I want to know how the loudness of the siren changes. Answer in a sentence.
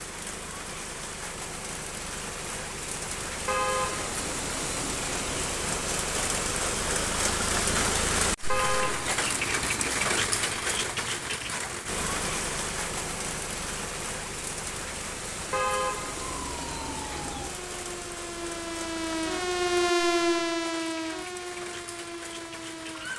The volume of the siren goes up, then down.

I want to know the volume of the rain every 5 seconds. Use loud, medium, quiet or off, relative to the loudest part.
medium, loud, loud, medium, quiet.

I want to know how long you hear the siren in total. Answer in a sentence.
You can hear the siren for 7 seconds altogether.